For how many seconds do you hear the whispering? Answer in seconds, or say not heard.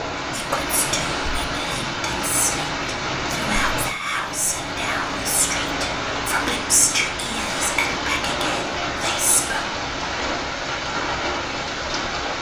9 s.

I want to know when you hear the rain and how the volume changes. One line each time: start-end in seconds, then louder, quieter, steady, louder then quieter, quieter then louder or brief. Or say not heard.
0.0-12.3 steady.